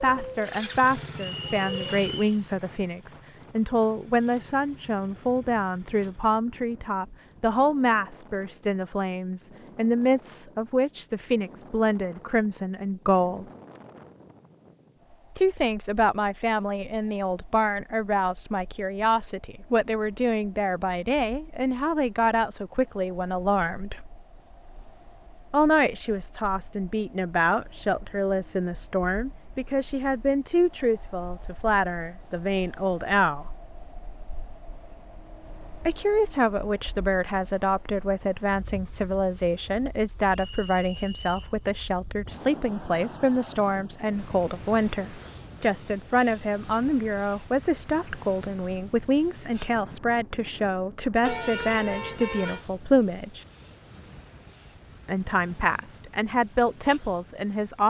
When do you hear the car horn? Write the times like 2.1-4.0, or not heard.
51.2-52.6.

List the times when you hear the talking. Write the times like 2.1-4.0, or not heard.
0.0-13.4, 15.3-24.1, 25.5-33.5, 35.9-53.5, 55.0-57.8.